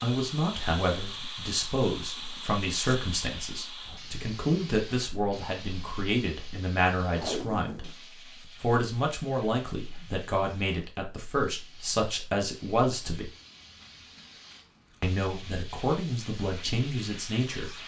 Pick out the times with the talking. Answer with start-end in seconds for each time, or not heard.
0.0-7.9, 8.6-13.3, 15.0-17.8.